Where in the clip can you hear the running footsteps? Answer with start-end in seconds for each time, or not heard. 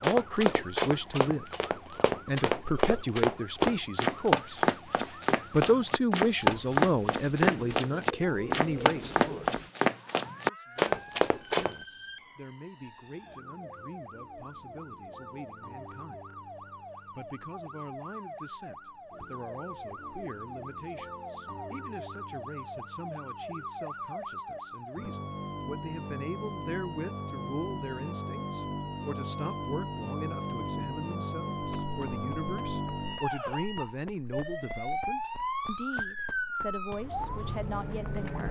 0.0-11.8, 31.6-38.4.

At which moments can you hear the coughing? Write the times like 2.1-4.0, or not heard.
not heard.